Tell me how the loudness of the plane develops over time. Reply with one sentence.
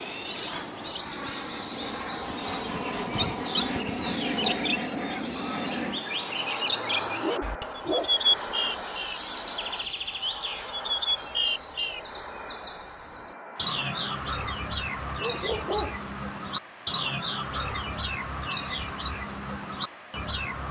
The volume of the plane goes down.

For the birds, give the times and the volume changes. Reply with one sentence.
The birds can be heard from 0.0 to 20.6 s, at a steady volume.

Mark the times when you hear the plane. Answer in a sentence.
You can hear the plane from 0.0 to 20.6 s.